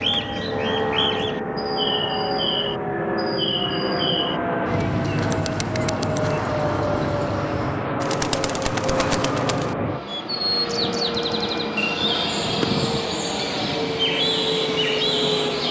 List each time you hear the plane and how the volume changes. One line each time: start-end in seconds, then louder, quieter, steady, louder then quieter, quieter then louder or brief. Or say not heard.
0.0-15.6 steady.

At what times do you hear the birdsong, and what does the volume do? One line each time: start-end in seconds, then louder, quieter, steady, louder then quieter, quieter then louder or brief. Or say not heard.
0.0-15.6 steady.